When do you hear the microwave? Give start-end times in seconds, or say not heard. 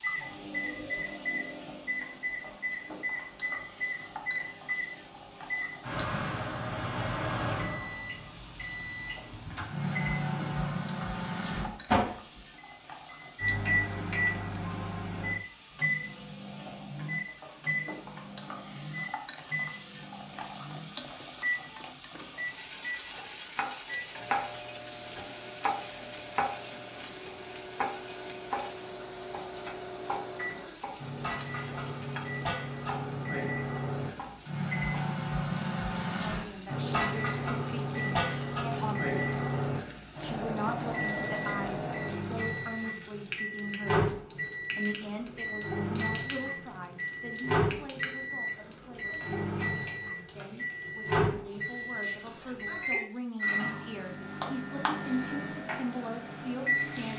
0.0-57.1.